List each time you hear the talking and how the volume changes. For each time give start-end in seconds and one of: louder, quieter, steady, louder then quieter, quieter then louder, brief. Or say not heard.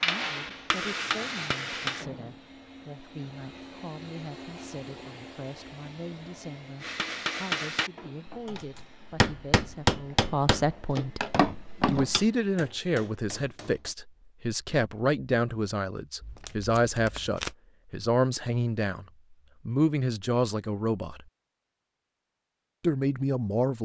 0.0-11.2 louder
11.8-19.1 steady
19.6-21.2 brief
22.8-23.8 brief.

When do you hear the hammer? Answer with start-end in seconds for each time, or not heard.
0.0-2.0, 6.8-13.9.